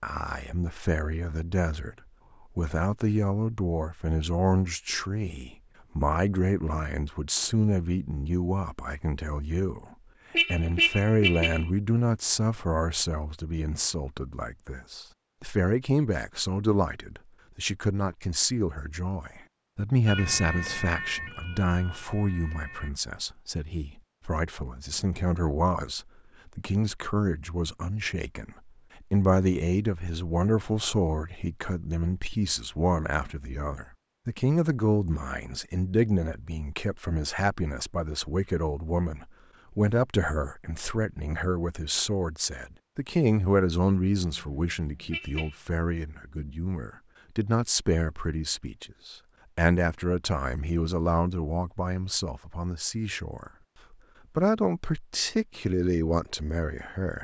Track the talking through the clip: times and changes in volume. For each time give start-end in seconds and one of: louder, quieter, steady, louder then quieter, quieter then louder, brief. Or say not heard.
0.0-1.9 brief
2.5-53.5 steady
54.4-57.1 brief.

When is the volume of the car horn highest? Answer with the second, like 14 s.
11 s.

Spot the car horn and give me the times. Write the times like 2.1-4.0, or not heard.
10.3-11.7, 44.2-45.5.